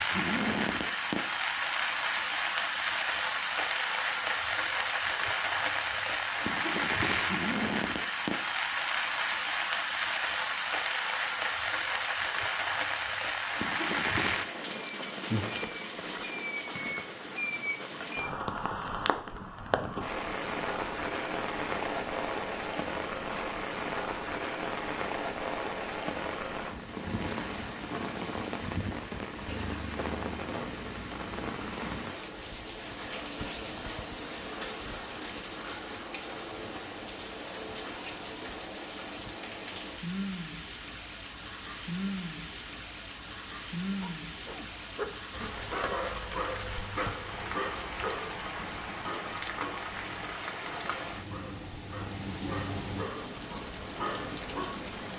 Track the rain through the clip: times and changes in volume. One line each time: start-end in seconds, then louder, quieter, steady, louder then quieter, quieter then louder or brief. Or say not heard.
0.0-55.1 quieter.